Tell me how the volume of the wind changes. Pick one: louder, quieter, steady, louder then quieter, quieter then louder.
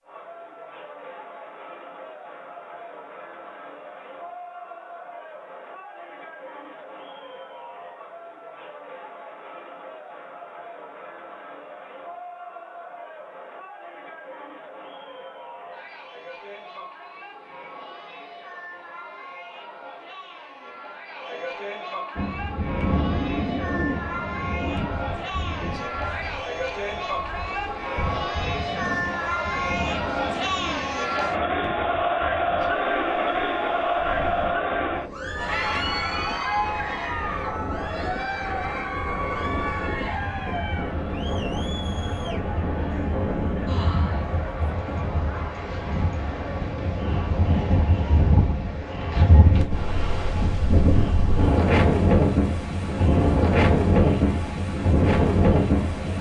quieter then louder.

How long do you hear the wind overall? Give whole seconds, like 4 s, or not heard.
34 s.